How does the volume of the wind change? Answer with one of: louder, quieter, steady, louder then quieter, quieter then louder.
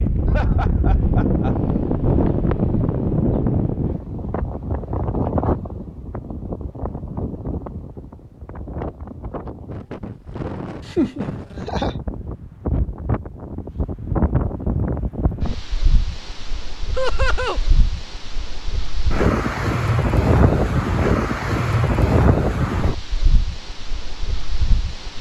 quieter then louder.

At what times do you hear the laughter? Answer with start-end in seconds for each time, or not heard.
0.2-1.6, 10.8-11.9, 16.9-17.6.